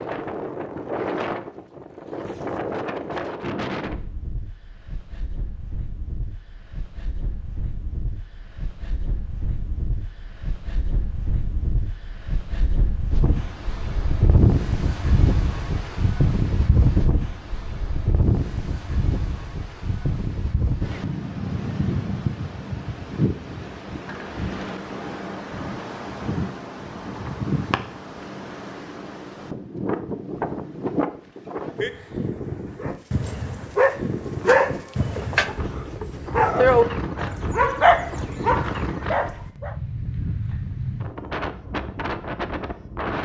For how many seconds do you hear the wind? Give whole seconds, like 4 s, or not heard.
43 s.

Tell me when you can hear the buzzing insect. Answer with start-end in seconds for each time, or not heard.
not heard.